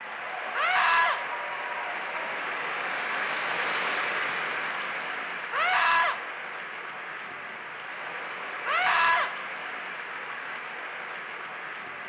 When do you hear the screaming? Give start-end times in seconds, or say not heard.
0.5-1.2, 5.5-6.2, 8.7-9.3.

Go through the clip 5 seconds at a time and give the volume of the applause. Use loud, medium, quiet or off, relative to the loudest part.
loud, medium, medium.